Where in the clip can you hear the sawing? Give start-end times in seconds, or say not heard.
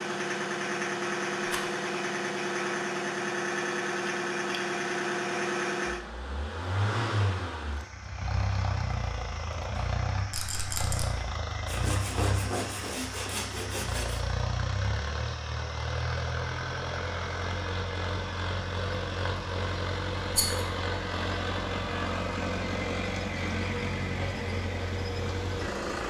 11.7-14.2.